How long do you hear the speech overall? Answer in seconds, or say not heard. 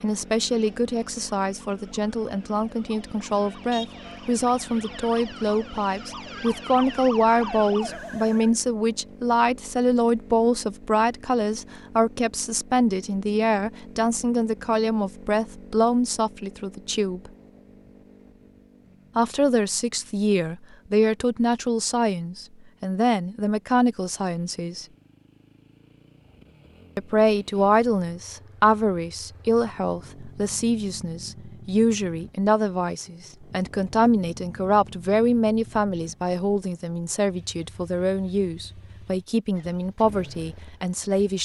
37 s.